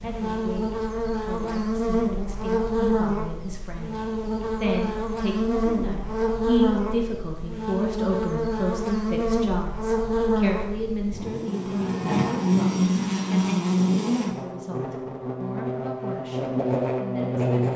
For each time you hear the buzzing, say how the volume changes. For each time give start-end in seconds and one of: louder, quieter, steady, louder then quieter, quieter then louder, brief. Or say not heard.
0.0-17.7 steady.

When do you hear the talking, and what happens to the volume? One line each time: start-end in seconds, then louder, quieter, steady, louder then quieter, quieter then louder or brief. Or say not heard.
0.0-17.7 louder then quieter.